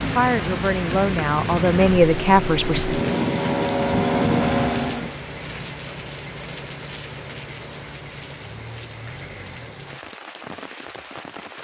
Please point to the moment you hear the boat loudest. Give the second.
4 s.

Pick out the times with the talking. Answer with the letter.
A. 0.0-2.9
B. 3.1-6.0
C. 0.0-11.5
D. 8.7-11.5
A.